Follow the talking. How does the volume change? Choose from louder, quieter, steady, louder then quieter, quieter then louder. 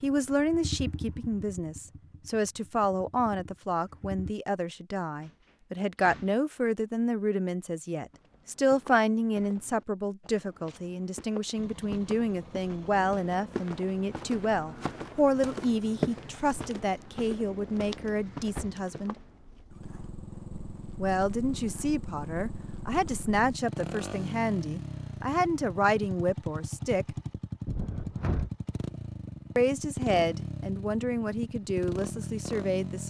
steady.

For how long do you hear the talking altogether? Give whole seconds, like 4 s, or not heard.
29 s.